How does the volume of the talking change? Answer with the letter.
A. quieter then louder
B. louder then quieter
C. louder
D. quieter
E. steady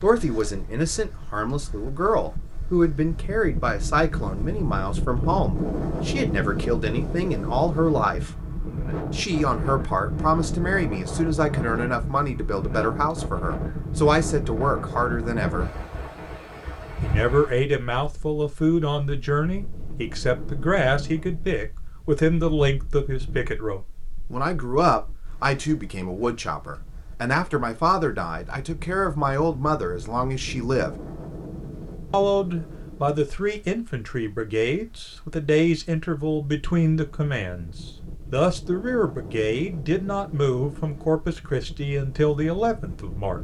E.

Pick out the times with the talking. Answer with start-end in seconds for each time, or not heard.
0.0-8.3, 9.1-15.7, 17.0-30.9, 32.1-43.3.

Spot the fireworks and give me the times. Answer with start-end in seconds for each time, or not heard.
not heard.